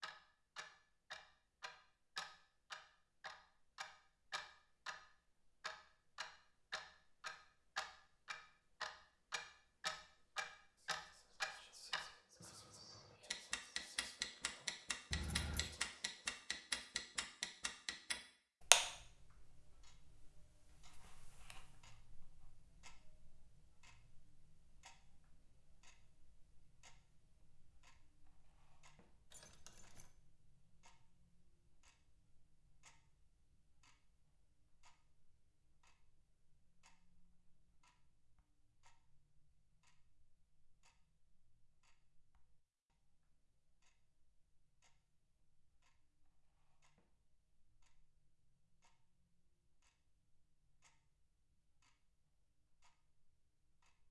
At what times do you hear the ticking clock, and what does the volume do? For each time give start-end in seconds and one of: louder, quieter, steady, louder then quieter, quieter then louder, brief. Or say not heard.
0.0-54.0 louder then quieter.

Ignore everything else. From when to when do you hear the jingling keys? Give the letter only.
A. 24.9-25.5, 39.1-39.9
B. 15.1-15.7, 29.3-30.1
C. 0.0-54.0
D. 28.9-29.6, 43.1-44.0
B.